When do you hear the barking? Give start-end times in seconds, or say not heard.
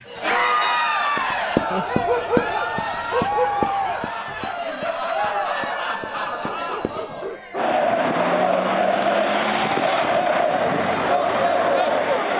1.7-4.0, 6.3-7.7.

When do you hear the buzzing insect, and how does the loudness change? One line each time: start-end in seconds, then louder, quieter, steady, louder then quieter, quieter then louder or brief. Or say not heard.
not heard.